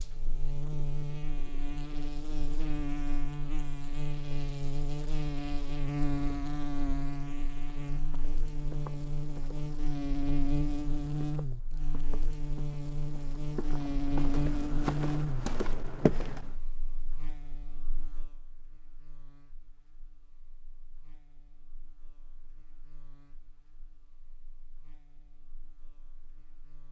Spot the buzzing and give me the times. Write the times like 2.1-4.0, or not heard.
0.0-26.8.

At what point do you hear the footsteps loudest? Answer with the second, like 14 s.
16 s.